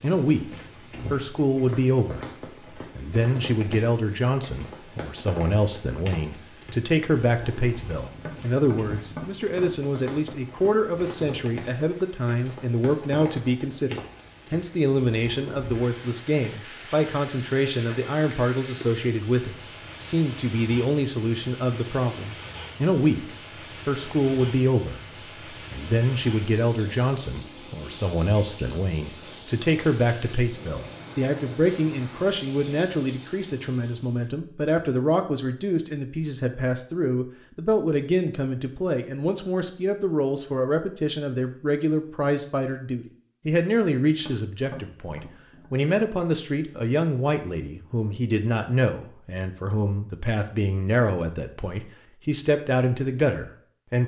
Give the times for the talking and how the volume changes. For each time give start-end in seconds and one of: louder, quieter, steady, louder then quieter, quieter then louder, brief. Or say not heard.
0.0-54.0 steady.